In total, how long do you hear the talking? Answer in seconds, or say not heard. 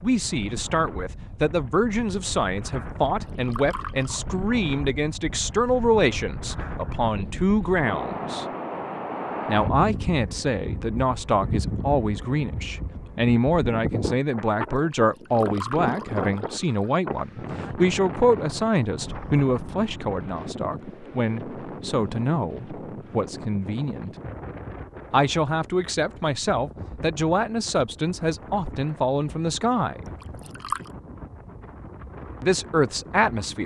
29 s.